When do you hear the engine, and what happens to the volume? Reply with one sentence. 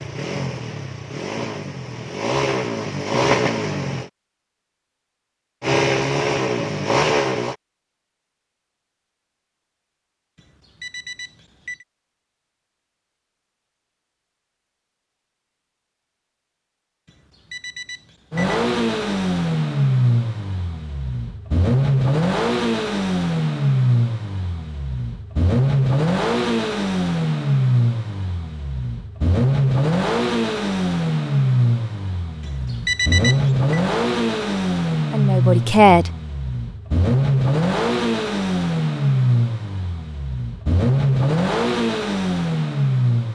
You can hear the engine from 0.0 to 4.1 s, getting louder; briefly from 5.6 to 7.5 s; and from 18.3 to 43.3 s, at a steady volume.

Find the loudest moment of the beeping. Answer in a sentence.
The volume of the beeping peaks at 33 seconds.